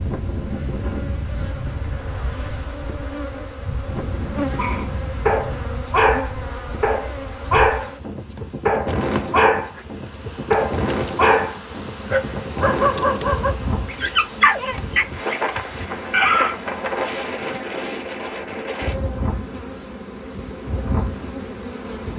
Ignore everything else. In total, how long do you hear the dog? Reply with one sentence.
You can hear the dog for 12 seconds altogether.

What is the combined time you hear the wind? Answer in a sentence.
You can hear the wind for 22 seconds altogether.